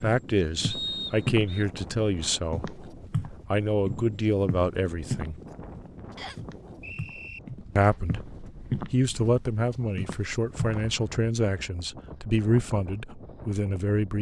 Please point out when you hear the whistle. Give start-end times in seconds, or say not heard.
0.7-1.6, 6.2-7.4, 10.7-11.2.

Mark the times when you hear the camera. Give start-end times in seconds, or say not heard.
not heard.